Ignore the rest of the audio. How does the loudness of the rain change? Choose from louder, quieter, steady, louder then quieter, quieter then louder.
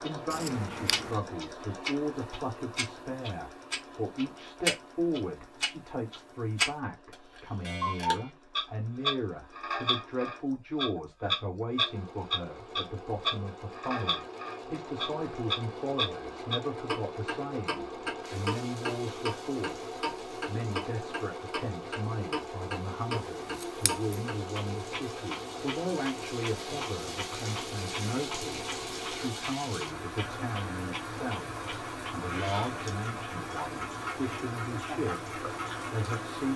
louder.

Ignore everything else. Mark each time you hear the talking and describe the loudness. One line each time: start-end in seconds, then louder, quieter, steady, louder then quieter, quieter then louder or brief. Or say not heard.
0.0-36.5 steady.